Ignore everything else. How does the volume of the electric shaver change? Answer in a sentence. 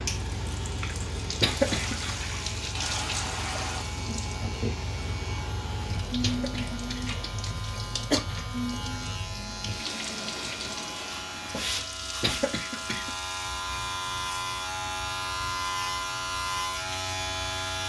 The volume of the electric shaver goes up.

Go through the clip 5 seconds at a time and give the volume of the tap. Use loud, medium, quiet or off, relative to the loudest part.
loud, loud, medium, quiet.